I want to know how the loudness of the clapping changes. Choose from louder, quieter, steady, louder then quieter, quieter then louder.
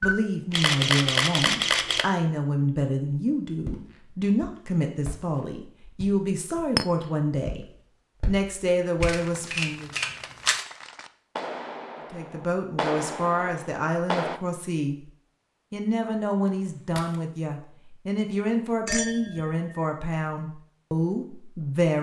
louder then quieter.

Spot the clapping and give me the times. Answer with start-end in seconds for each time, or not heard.
9.1-14.4.